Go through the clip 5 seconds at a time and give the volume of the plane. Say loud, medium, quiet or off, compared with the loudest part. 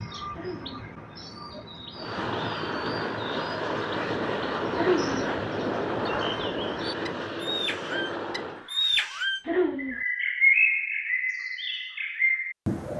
loud, loud, off.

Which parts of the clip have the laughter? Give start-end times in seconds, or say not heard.
0.3-0.8, 4.8-5.2, 9.4-10.0.